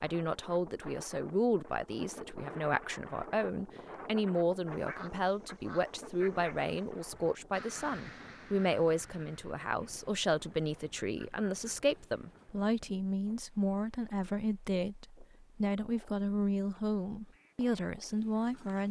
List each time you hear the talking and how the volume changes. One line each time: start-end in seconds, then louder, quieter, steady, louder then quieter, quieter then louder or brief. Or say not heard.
0.0-18.8 steady.